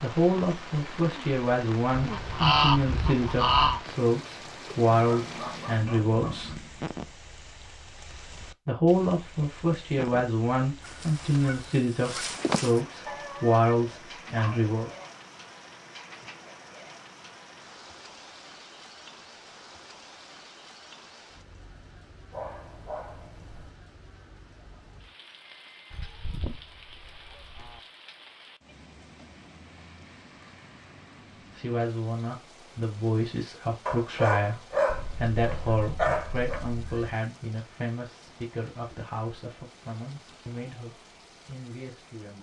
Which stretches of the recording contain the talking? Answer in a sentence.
You can hear the talking from 0.0 to 6.6 s, from 8.7 to 14.9 s and from 31.5 to 42.3 s.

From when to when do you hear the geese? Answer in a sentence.
The geese can be heard from 1.9 to 3.8 s, from 11.3 to 12.7 s, from 25.9 to 27.8 s and from 34.9 to 37.1 s.